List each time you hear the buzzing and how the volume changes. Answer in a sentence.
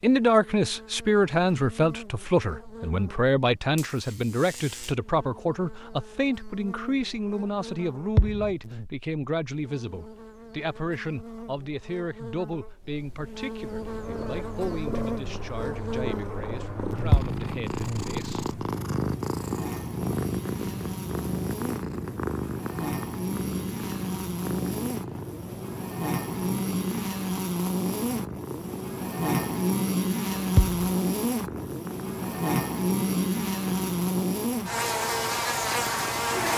The buzzing can be heard from 0.0 to 36.5 s, getting louder.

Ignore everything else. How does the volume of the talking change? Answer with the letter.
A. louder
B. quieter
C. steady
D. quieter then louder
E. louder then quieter
B.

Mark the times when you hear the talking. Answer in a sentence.
The talking can be heard from 0.0 to 18.5 s.